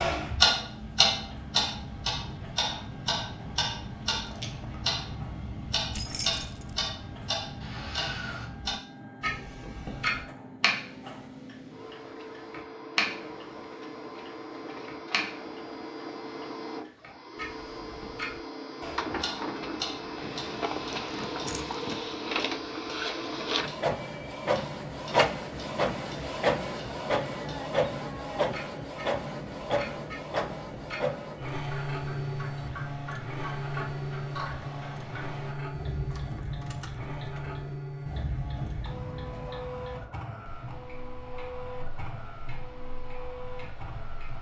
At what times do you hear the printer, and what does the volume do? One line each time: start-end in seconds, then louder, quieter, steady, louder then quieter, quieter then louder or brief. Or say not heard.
0.1-44.3 louder then quieter.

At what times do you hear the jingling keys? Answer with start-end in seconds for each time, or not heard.
5.9-6.9, 20.2-22.0, 36.1-37.6.